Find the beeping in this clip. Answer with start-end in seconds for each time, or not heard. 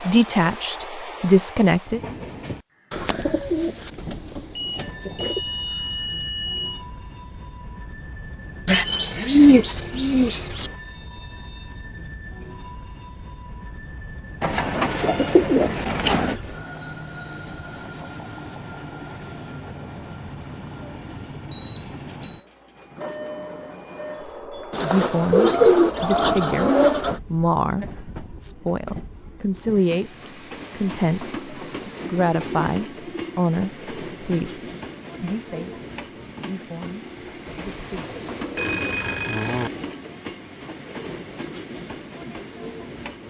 4.5-6.8, 21.5-22.4, 38.5-39.7.